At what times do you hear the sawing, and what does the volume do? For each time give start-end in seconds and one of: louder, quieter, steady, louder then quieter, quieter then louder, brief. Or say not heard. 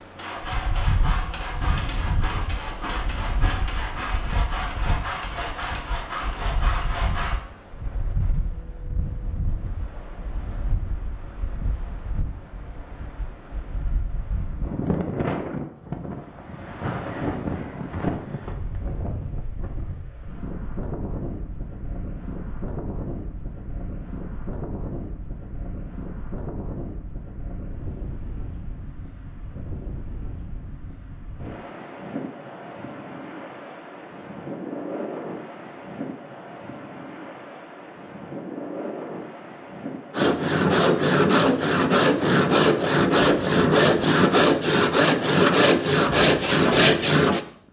0.1-7.4 steady
40.1-47.4 steady.